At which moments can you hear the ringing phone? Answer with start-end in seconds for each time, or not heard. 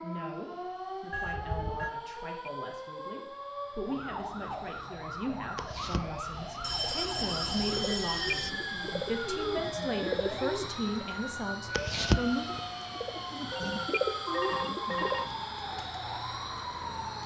1.1-1.9, 6.5-8.5, 13.5-15.3.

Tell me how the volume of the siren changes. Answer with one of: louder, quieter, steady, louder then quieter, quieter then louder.
steady.